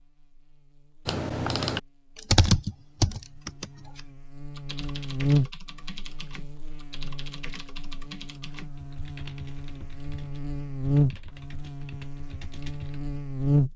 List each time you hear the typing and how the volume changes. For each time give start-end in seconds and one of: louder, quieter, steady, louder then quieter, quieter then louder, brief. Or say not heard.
1.1-13.0 quieter.